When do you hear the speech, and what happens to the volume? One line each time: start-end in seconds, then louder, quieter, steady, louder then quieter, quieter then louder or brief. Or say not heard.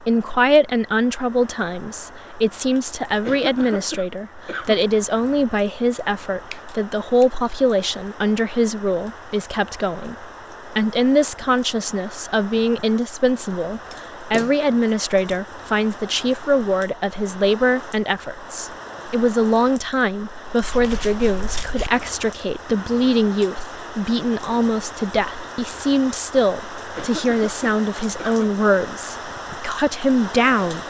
0.0-30.8 steady.